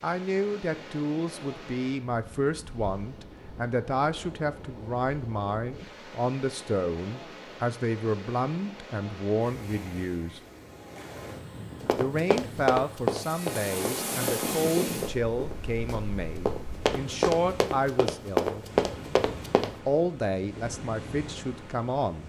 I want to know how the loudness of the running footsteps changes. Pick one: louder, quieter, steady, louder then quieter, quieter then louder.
quieter then louder.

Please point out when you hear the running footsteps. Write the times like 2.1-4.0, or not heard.
11.8-19.8.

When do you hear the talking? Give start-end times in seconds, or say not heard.
0.0-10.4, 11.9-18.6, 19.9-22.2.